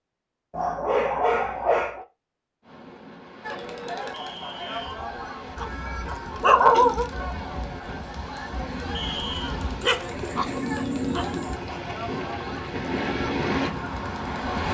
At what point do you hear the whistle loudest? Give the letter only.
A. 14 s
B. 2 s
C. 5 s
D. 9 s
D.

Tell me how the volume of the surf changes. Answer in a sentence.
The loudness of the surf goes up.